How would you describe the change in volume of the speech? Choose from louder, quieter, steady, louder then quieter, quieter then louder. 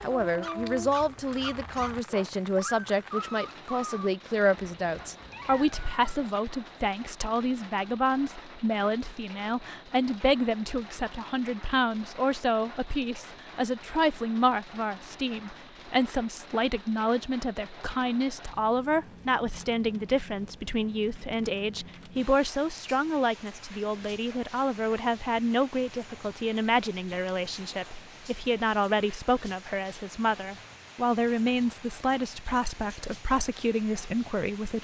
steady.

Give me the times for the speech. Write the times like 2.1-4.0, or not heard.
0.0-34.7.